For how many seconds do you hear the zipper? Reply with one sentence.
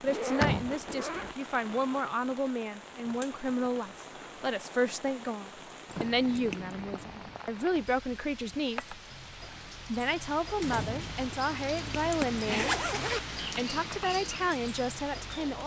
You can hear the zipper for 4 seconds altogether.